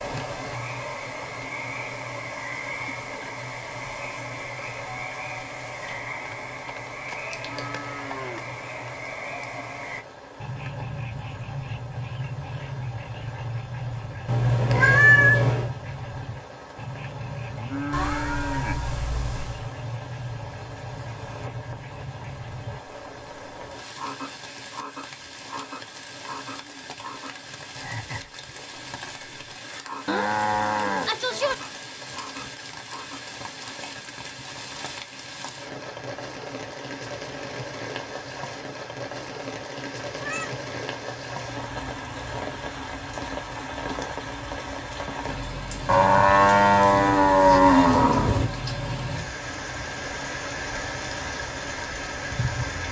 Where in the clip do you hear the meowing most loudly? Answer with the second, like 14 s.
15 s.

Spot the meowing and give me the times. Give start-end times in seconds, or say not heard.
14.2-15.8, 17.9-19.6, 40.1-42.4.